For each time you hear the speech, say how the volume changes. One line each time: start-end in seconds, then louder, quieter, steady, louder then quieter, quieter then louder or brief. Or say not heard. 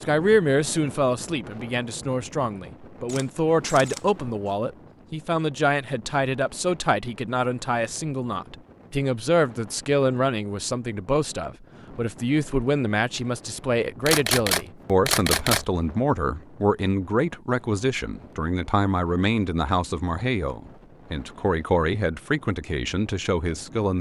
0.0-23.9 steady.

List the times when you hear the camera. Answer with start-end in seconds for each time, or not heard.
3.0-4.5, 14.1-15.7.